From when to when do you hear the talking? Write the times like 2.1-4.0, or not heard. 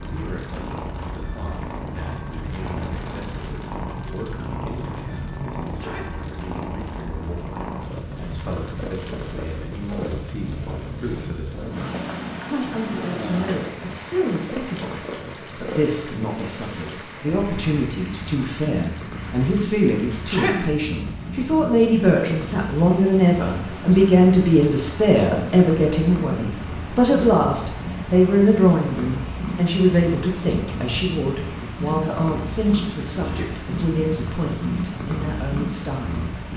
0.0-36.3.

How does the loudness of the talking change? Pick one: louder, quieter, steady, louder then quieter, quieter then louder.
louder then quieter.